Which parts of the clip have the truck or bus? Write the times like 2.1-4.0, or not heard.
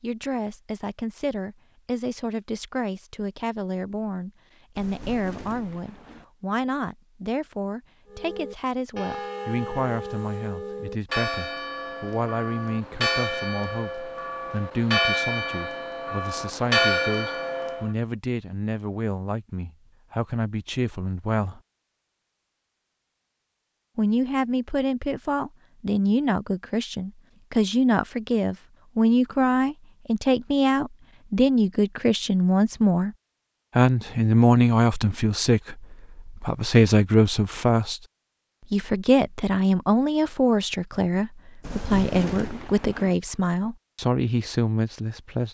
not heard.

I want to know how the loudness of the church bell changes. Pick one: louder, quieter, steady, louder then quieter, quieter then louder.
louder.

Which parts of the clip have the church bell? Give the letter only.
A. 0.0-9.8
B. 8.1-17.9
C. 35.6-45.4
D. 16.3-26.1
B.